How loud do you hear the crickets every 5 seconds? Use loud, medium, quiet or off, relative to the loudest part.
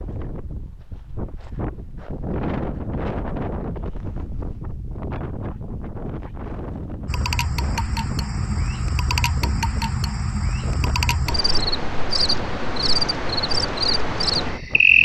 off, medium, loud.